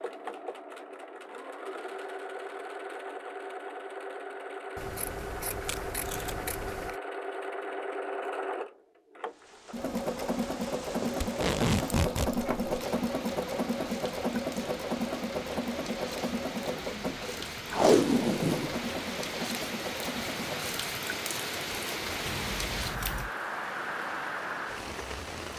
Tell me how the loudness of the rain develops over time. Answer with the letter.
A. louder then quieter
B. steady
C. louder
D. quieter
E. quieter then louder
C.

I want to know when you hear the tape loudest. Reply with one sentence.
The volume of the tape peaks at 18 seconds.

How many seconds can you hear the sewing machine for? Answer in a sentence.
You can hear the sewing machine for 21 seconds altogether.